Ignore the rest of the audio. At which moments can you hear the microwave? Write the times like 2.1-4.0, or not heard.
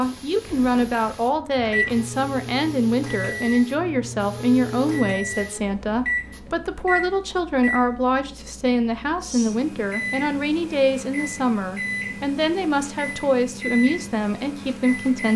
0.0-15.3.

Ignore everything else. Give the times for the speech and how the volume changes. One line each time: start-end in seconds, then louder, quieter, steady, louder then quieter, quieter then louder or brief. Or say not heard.
0.0-15.3 steady.